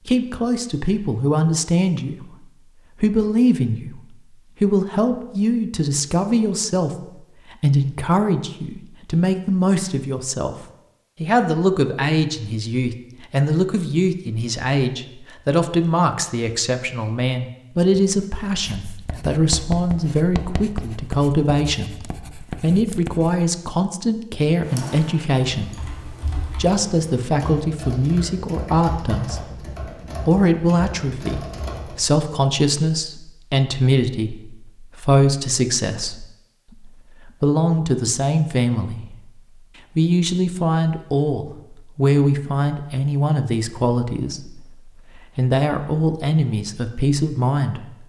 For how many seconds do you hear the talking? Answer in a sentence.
You can hear the talking for 47 seconds altogether.